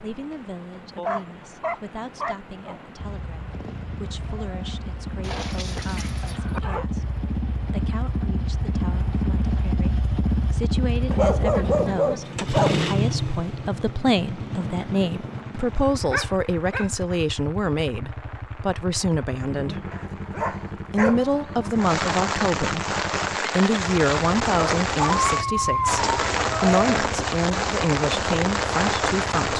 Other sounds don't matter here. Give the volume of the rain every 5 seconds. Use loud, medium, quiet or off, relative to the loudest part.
quiet, quiet, quiet, quiet, loud, loud.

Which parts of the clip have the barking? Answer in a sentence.
The barking can be heard from 0.9 to 3.0 s, from 5.2 to 6.8 s, from 11.1 to 12.8 s, from 15.9 to 16.9 s, from 19.9 to 21.7 s and from 24.6 to 27.0 s.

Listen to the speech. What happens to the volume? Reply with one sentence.
The loudness of the speech goes up.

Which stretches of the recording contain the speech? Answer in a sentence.
The speech can be heard from 0.0 to 19.9 s and from 20.9 to 29.5 s.